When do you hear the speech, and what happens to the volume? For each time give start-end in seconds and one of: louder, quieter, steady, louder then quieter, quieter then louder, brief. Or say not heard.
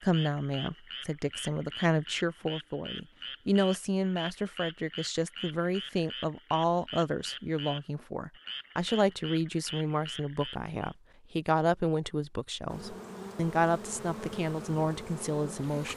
0.0-15.9 steady.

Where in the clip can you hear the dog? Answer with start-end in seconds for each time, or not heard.
not heard.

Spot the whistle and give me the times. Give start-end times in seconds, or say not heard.
not heard.